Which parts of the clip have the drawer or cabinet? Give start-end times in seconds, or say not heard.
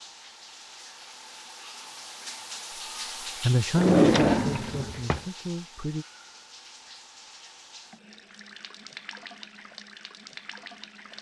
3.8-5.2.